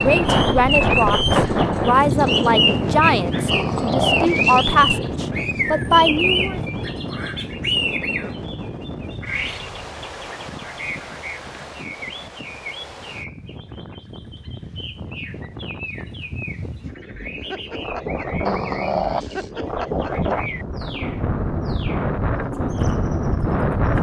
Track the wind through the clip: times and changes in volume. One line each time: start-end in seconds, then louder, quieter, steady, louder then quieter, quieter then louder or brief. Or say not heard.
0.0-23.9 quieter then louder.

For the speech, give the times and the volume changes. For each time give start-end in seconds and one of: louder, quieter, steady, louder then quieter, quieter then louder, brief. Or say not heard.
0.0-6.6 steady.